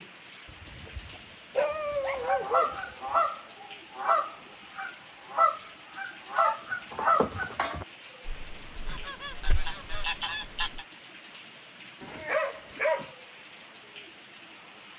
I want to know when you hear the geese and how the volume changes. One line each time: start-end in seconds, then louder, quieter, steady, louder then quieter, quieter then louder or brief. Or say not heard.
2.1-10.8 quieter.